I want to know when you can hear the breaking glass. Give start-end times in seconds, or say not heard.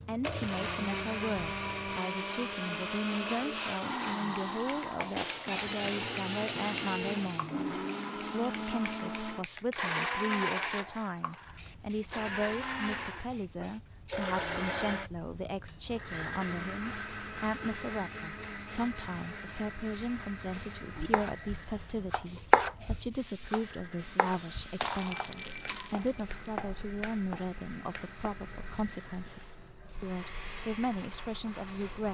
5.2-7.1, 24.8-26.2.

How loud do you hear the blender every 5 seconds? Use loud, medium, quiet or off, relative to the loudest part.
loud, loud, loud, medium, quiet, quiet, medium.